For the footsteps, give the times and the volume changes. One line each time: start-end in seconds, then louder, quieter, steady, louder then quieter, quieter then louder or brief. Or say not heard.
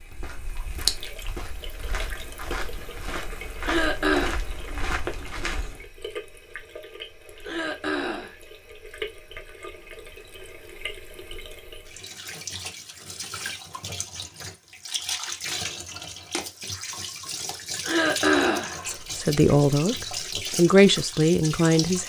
0.0-5.8 louder.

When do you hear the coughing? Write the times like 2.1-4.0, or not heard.
3.6-4.3, 7.5-8.3, 17.8-18.8.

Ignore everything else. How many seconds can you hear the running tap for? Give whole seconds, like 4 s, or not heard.
22 s.